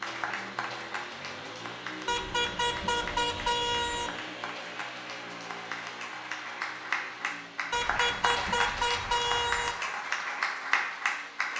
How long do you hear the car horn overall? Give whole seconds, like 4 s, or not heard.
4 s.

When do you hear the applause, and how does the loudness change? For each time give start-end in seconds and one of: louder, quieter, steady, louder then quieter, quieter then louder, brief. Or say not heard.
0.0-11.5 louder.